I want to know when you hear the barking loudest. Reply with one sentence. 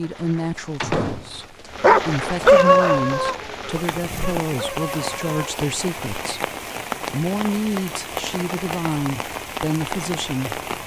The loudest moment of the barking is at 3 seconds.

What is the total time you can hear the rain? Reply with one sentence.
You can hear the rain for 11 seconds altogether.